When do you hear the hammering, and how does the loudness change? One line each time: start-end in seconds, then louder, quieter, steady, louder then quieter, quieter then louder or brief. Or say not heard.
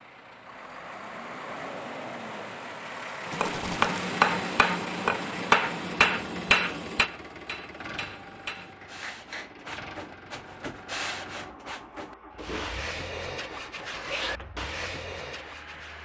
3.2-9.5 quieter.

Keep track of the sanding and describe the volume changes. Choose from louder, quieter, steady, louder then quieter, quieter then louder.
louder.